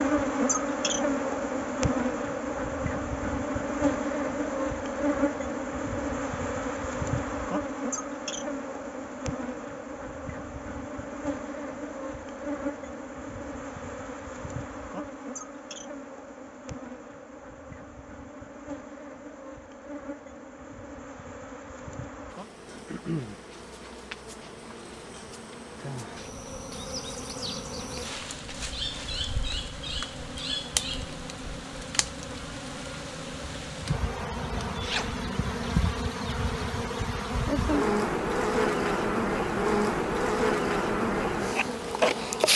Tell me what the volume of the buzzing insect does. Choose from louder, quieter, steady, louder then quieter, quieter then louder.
quieter then louder.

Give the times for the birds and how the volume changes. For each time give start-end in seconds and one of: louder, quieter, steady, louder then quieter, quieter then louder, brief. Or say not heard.
not heard.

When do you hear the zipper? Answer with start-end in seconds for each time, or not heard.
34.8-35.2.